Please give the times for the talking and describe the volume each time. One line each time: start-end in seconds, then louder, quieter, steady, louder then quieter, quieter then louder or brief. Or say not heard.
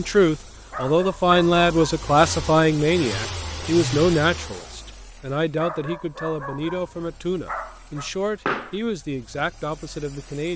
0.0-10.5 quieter.